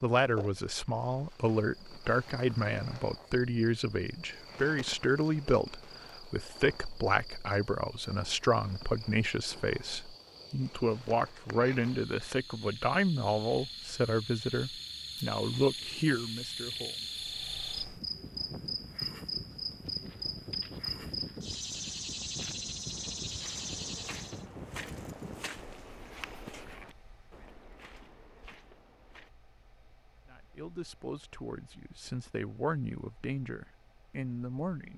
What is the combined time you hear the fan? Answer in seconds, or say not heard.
18 s.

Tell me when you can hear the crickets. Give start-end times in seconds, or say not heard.
0.1-24.4.